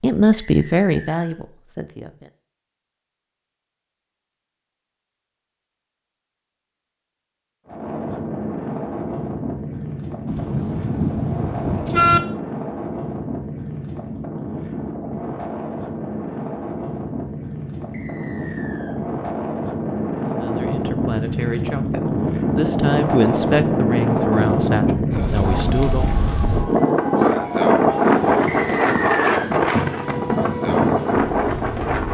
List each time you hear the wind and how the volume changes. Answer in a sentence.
You can hear the wind from 7.7 to 32.1 s, getting louder.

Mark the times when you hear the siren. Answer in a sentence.
The siren can be heard from 25.4 to 32.1 s.